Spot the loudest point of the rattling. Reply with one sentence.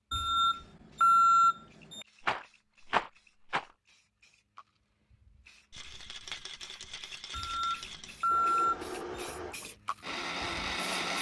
The loudest moment of the rattling is at 3 seconds.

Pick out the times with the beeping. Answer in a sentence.
You can hear the beeping from 0.1 to 2.0 s and from 7.3 to 9.2 s.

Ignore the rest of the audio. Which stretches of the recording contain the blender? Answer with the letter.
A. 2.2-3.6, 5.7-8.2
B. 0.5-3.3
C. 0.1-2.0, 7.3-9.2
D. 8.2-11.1
D.